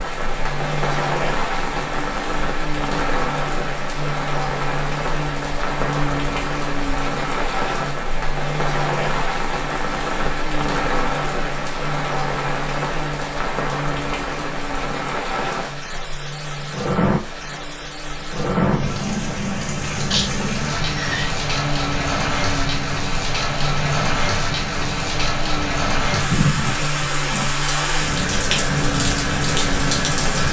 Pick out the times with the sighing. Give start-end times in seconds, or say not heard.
20.1-21.3.